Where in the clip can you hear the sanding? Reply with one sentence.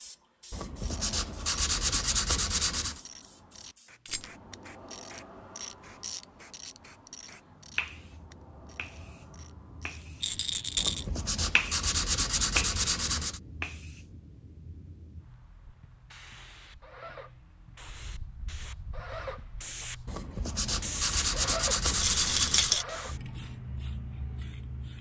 You can hear the sanding from 0.5 to 3.0 s, from 10.8 to 13.4 s and from 20.1 to 22.8 s.